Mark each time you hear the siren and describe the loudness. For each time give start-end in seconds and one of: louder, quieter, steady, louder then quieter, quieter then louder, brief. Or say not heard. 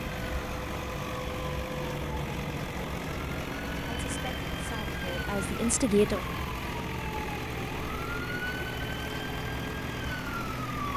0.0-10.9 steady.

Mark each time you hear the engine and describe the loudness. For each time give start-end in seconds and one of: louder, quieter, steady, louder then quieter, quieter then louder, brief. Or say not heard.
0.0-10.9 steady.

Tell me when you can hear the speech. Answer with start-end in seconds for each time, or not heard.
3.9-6.2.